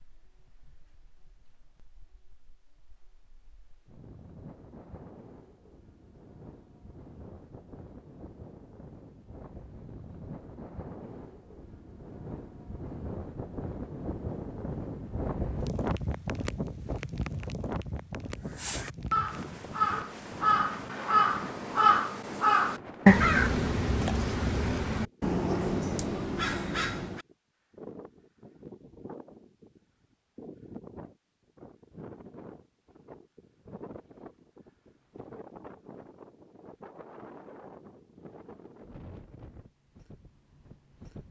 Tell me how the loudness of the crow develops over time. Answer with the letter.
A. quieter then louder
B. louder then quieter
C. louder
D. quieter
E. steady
B.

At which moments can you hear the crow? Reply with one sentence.
The crow can be heard from 18.4 to 27.2 s.